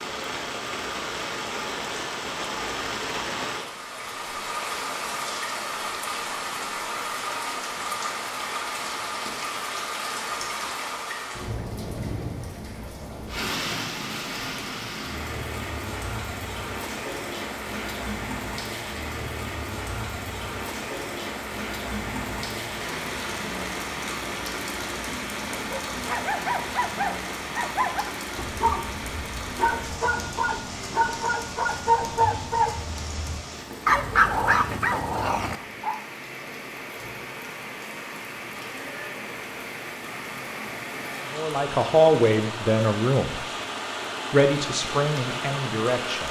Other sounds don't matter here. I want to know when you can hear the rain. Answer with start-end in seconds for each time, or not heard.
0.0-46.2.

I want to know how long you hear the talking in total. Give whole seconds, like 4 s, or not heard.
4 s.